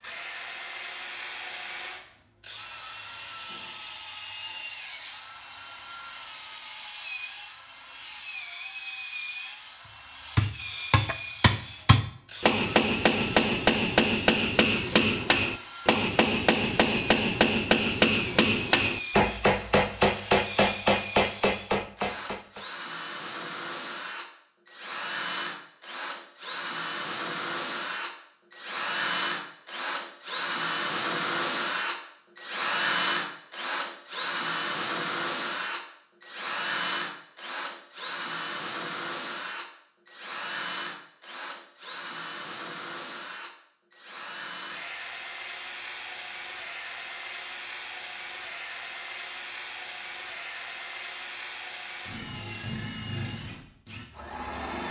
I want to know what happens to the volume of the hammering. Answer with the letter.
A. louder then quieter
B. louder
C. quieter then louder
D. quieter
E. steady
E.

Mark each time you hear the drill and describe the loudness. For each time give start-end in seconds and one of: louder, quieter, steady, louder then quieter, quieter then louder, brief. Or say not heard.
0.0-54.8 louder then quieter.